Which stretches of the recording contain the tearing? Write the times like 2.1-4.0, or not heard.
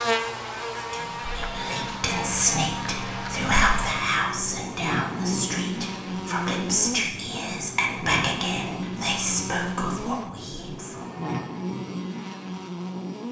not heard.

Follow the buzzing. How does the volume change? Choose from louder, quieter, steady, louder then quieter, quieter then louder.
steady.